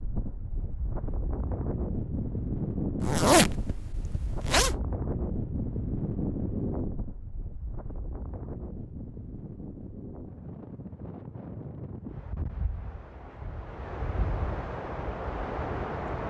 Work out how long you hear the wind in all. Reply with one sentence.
You can hear the wind for 16 seconds altogether.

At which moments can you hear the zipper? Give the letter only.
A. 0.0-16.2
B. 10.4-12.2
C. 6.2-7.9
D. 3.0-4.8
D.